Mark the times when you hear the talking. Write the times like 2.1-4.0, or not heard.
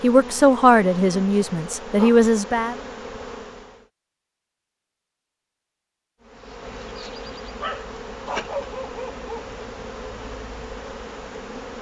0.0-2.8.